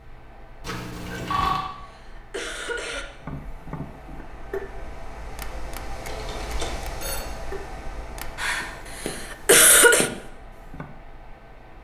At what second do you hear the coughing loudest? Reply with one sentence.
The volume of the coughing peaks at 10 seconds.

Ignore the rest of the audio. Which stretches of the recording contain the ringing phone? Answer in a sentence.
You can hear the ringing phone from 0.6 to 1.7 s and from 6.0 to 7.2 s.